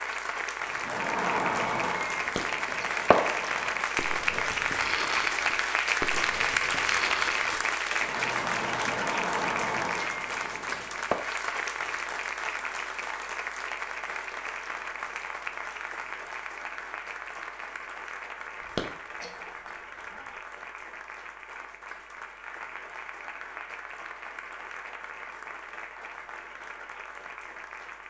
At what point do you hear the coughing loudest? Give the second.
19 s.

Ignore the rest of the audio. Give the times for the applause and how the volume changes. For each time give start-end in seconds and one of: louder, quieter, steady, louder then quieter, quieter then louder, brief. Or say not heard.
0.0-28.0 quieter.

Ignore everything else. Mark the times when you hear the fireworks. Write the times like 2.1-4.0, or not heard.
0.7-11.2.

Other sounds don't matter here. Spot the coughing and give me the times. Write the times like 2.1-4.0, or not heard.
2.4-2.9, 18.8-20.2.